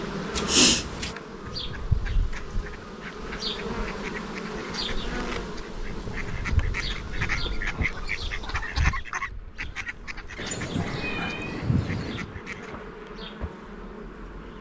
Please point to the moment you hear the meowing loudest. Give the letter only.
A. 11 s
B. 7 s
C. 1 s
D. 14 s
C.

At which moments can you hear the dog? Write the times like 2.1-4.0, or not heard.
not heard.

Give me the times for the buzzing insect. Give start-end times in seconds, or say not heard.
0.0-14.5.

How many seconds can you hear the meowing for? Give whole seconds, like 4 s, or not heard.
5 s.